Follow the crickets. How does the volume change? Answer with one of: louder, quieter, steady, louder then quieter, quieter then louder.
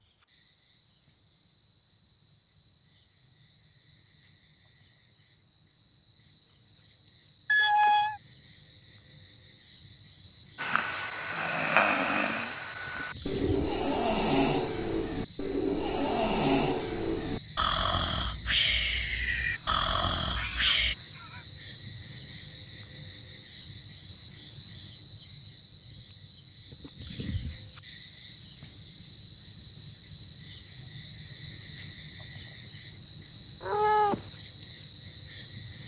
louder.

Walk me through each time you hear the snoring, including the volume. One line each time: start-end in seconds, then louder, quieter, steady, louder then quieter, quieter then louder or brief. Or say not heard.
10.6-20.9 steady.